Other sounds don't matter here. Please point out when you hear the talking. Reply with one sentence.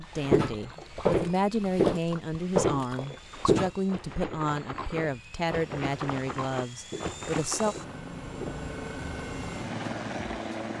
You can hear the talking from 0.0 to 7.8 s.